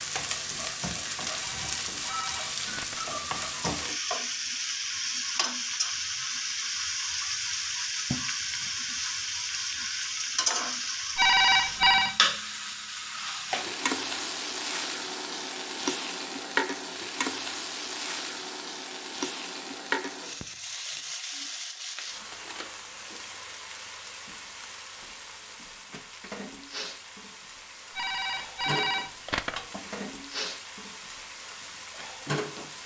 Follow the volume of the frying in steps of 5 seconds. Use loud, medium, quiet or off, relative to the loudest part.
loud, loud, loud, loud, medium, medium, medium.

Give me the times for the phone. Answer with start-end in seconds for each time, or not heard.
1.4-3.0, 11.2-12.2, 27.9-29.6.